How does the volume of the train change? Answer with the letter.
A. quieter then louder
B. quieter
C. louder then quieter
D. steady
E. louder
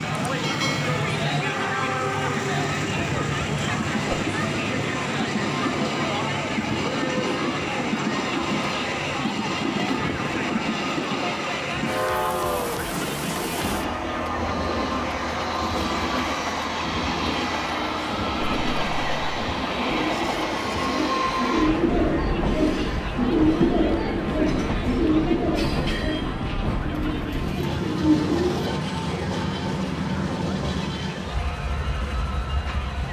D.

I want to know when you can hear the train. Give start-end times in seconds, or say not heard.
0.0-33.0.